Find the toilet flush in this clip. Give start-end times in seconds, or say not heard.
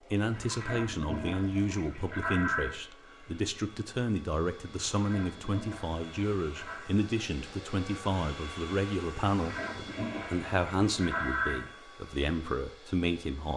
0.3-2.8, 4.8-6.9, 9.2-11.7.